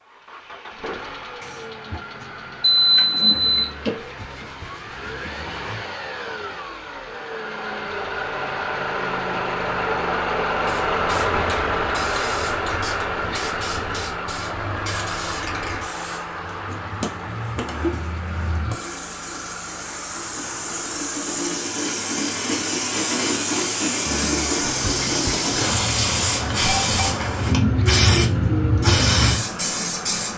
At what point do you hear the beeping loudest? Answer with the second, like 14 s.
3 s.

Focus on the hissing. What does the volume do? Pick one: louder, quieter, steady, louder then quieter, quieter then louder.
louder.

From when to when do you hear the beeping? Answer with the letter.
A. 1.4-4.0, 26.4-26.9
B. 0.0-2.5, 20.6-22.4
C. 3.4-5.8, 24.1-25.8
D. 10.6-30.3
A.